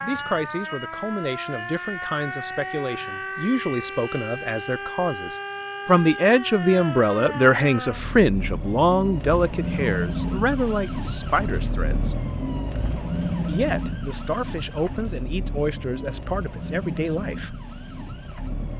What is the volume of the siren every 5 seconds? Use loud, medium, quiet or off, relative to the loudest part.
loud, loud, loud, medium.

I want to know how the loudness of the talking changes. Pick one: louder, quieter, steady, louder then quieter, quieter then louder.
louder then quieter.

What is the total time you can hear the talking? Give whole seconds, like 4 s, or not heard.
16 s.